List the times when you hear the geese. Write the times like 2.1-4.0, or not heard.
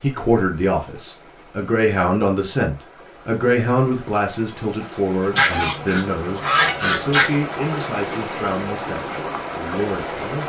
5.3-7.3.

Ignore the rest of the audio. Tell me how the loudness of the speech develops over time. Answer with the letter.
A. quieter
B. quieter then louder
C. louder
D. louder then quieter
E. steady
A.